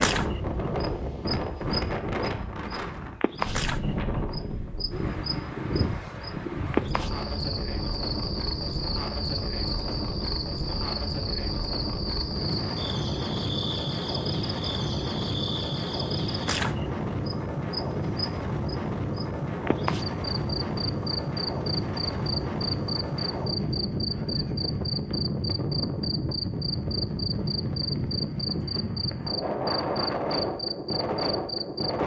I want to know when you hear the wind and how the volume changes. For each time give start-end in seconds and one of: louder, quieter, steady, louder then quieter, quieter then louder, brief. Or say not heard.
0.0-32.0 steady.